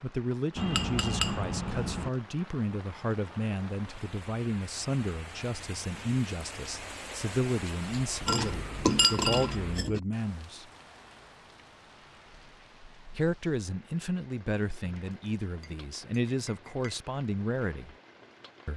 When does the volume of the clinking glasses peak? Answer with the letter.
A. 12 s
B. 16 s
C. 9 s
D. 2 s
C.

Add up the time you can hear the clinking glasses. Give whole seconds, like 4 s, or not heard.
5 s.